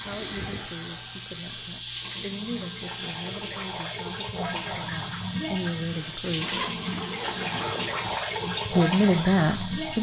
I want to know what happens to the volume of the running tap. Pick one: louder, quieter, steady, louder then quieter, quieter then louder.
louder.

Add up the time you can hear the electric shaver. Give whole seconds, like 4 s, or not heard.
10 s.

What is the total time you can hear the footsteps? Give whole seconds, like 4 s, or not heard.
not heard.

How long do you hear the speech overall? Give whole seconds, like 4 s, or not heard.
8 s.